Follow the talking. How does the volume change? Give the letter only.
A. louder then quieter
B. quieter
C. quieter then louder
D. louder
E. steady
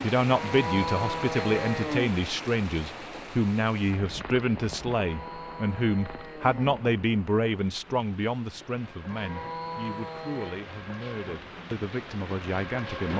B.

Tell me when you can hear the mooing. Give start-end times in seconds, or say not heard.
0.2-2.1, 5.0-6.8, 9.1-10.7.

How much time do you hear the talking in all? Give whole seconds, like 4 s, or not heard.
13 s.